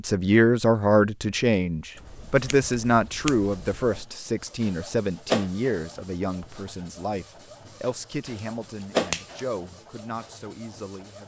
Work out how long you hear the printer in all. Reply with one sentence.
You can hear the printer for 9 seconds altogether.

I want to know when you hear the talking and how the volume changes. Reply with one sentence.
The talking can be heard from 0.0 to 11.2 s, getting quieter.